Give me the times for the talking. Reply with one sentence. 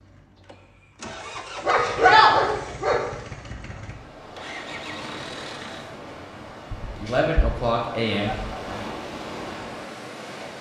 The talking can be heard from 7.0 to 8.8 s.